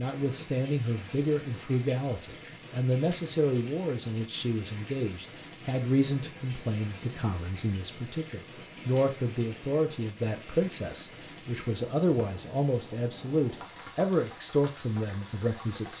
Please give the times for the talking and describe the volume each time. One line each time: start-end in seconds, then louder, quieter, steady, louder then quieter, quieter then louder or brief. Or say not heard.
0.0-15.9 steady.